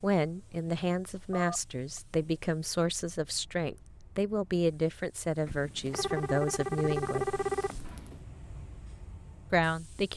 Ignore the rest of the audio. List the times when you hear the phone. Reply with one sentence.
The phone can be heard from 1.3 to 2.0 s and from 5.5 to 8.2 s.